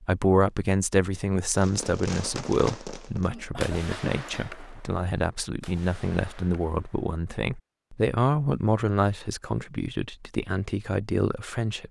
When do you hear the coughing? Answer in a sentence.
The coughing can be heard from 3.3 to 4.8 s.